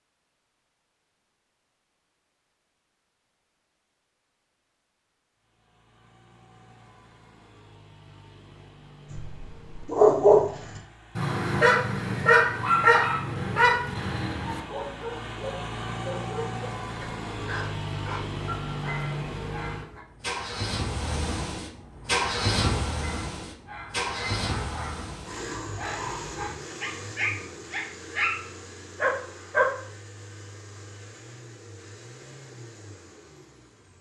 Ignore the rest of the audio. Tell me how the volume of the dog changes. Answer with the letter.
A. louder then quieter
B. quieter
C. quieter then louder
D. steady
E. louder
C.